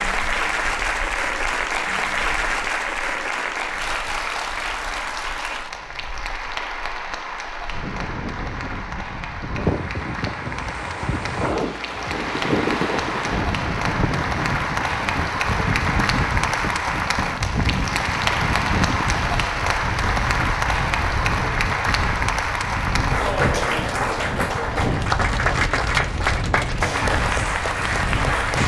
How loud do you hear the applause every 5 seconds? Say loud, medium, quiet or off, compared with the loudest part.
loud, medium, medium, loud, loud, loud.